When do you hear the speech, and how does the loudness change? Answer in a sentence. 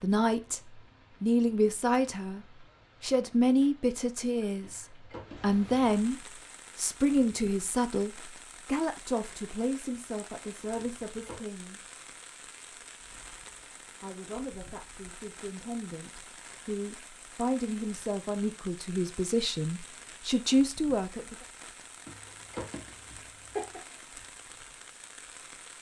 You can hear the speech from 0.0 to 11.8 s, getting quieter; and from 14.0 to 21.4 s, getting louder.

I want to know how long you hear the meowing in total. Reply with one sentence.
You can hear the meowing for 3 seconds altogether.